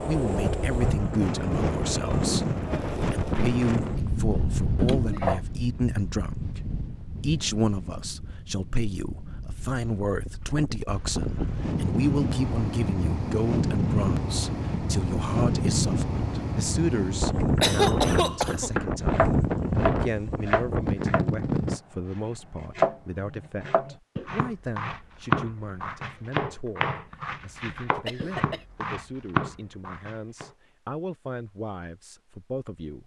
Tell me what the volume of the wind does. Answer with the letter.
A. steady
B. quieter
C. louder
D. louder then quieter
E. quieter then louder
E.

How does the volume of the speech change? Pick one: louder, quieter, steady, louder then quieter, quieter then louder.
quieter.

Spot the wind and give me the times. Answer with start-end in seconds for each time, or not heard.
0.0-21.8.